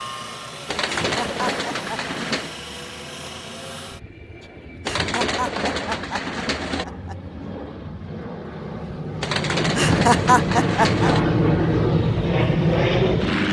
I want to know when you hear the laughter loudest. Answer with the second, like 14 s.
10 s.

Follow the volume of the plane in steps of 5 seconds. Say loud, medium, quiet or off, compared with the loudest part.
quiet, medium, loud.